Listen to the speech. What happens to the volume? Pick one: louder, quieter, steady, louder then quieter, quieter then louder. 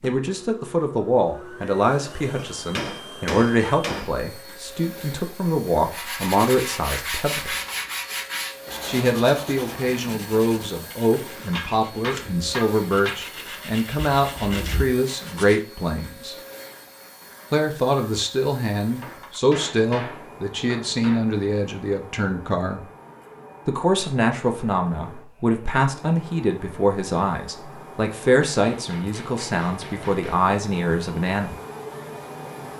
steady.